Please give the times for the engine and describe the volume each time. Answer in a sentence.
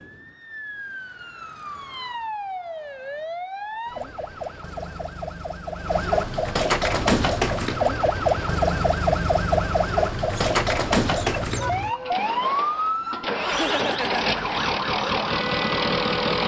The engine can be heard from 6.8 to 16.4 s, getting louder.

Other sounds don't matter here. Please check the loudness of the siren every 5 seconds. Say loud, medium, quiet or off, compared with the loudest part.
medium, loud, loud, medium.